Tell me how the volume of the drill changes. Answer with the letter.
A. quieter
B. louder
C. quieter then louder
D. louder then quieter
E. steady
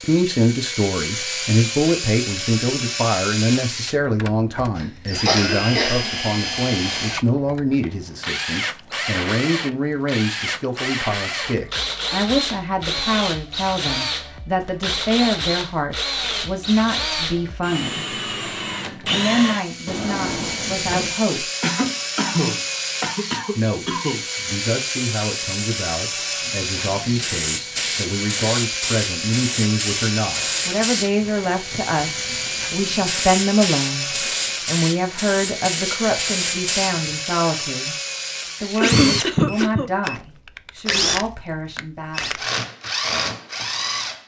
E.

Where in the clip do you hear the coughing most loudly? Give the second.
39 s.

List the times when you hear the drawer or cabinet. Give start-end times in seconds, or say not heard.
19.9-21.2.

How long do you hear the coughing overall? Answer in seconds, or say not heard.
5 s.